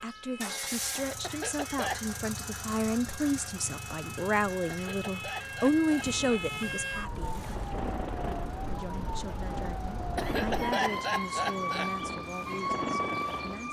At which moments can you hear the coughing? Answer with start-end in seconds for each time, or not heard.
1.2-2.1, 4.7-6.5, 10.2-11.9.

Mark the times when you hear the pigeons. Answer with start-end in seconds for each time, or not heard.
not heard.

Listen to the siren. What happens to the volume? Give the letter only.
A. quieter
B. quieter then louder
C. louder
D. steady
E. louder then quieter
C.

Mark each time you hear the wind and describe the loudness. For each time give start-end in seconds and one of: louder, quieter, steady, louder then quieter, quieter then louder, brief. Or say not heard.
6.0-13.6 louder.